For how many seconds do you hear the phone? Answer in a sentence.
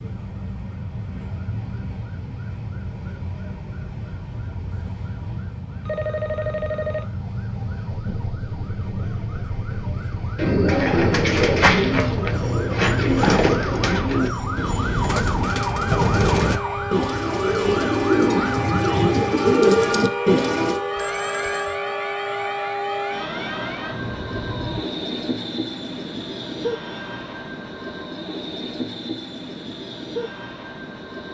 The phone can be heard for 2 seconds in total.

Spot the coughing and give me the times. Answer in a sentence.
You can't hear the coughing here.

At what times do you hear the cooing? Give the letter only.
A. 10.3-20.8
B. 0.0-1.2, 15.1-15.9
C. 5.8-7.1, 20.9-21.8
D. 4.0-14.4
A.